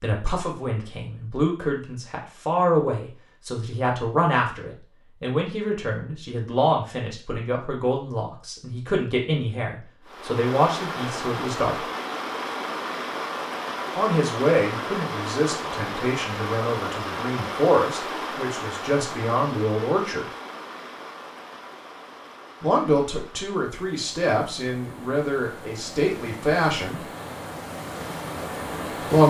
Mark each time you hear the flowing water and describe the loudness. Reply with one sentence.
The flowing water can be heard from 10.1 to 29.2 s, getting quieter then louder.